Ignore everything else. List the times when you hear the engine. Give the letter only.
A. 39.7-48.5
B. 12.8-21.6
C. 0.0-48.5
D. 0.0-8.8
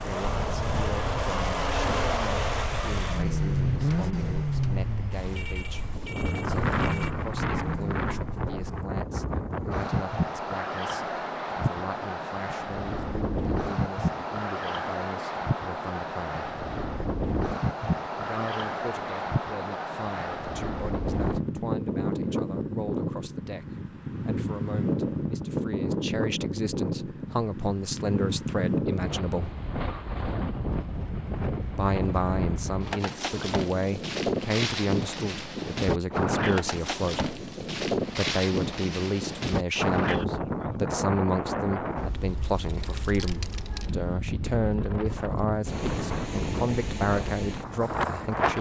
D.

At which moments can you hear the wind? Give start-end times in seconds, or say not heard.
0.0-48.5.